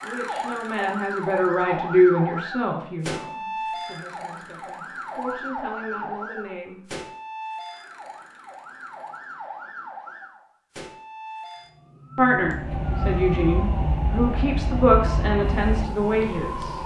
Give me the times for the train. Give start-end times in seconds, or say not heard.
12.4-16.8.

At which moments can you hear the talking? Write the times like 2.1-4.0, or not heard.
0.0-6.8, 12.2-16.8.